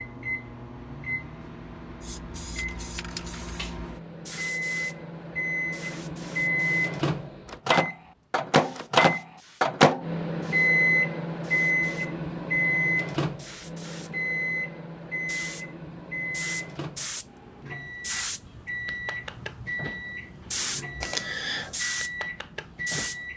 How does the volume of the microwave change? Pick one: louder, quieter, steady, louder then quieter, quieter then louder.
louder then quieter.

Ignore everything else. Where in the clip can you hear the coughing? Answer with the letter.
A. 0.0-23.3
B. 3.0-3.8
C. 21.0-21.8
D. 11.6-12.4
C.